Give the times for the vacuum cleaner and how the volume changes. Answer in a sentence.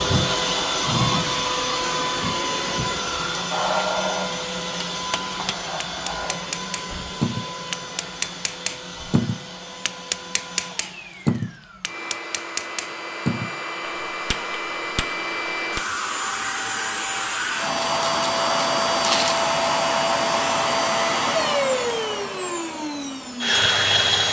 The vacuum cleaner can be heard from 0.0 to 24.2 s, getting quieter then louder.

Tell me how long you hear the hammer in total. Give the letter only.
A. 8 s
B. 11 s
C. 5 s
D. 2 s
B.